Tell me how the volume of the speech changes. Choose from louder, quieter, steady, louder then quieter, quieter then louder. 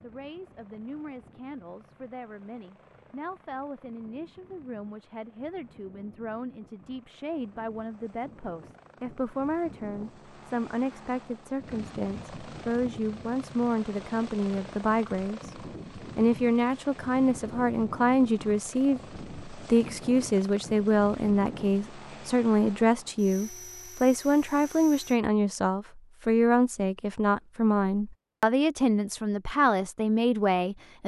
louder.